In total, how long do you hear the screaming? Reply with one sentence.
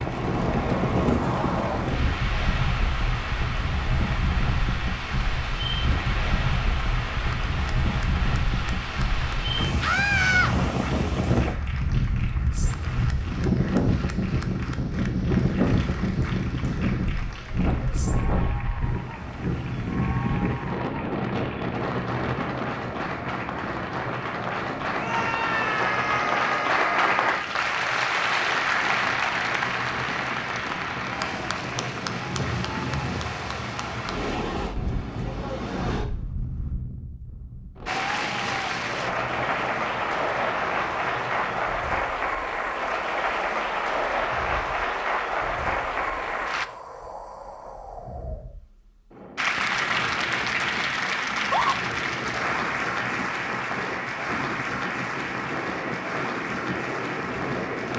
The screaming can be heard for 4 seconds in total.